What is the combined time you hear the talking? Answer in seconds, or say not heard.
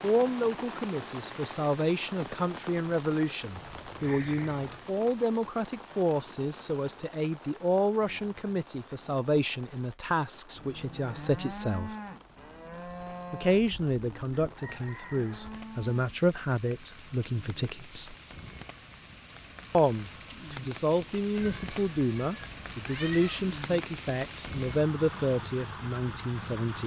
24 s.